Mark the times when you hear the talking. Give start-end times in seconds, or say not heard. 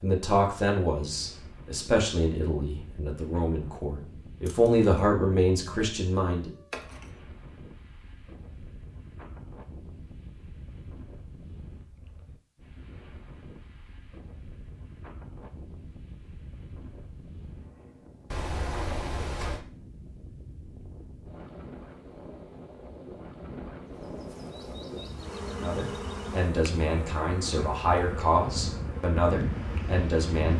0.0-6.5, 25.6-30.5.